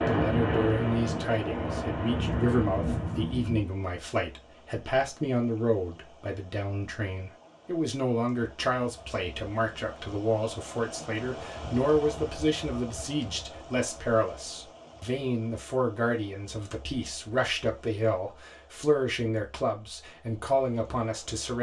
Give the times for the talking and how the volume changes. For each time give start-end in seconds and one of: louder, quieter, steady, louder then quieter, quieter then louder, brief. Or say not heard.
0.1-21.5 steady.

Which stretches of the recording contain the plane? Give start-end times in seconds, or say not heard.
0.0-3.6.